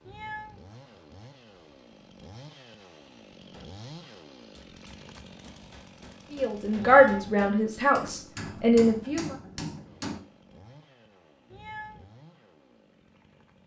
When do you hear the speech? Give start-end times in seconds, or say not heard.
6.3-9.3.